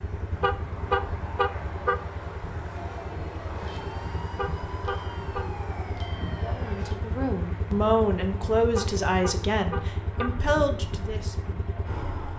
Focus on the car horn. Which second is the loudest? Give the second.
1 s.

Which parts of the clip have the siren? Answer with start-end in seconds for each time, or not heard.
2.7-7.0.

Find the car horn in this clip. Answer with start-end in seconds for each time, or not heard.
0.3-2.0, 4.2-5.5, 8.7-10.5.